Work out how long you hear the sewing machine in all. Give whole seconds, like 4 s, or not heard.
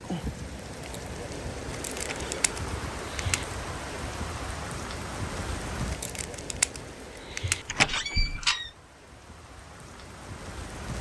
not heard.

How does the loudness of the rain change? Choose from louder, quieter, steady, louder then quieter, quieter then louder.
quieter.